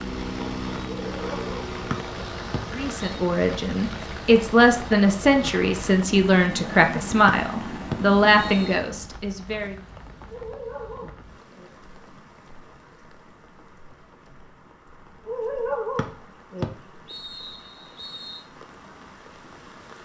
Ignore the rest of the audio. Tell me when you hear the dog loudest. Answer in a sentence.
The volume of the dog peaks at 16 seconds.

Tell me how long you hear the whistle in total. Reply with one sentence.
The whistle can be heard for 5 seconds in total.